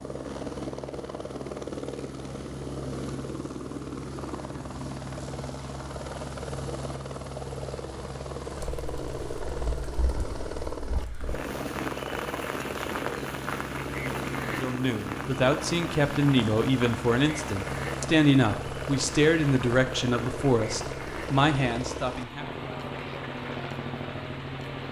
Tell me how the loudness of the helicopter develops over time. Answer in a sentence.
The loudness of the helicopter stays about the same.